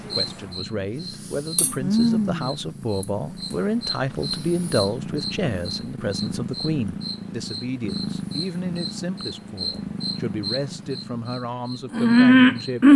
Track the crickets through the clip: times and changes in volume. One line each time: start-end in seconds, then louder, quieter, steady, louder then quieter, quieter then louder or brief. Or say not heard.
0.1-12.9 quieter then louder.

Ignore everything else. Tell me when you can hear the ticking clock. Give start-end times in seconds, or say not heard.
not heard.